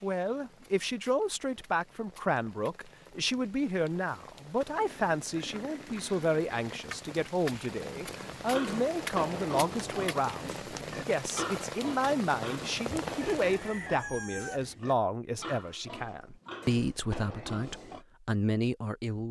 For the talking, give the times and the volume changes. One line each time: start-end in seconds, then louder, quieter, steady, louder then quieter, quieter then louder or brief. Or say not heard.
0.0-19.2 steady.